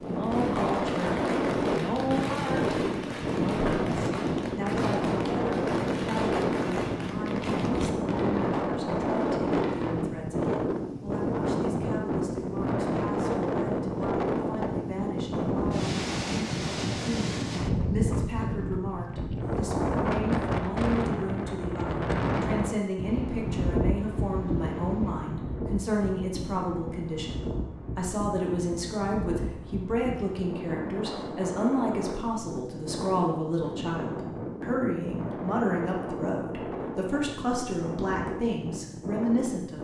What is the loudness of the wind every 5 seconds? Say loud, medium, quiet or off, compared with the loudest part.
loud, loud, loud, loud, loud, medium, medium, medium.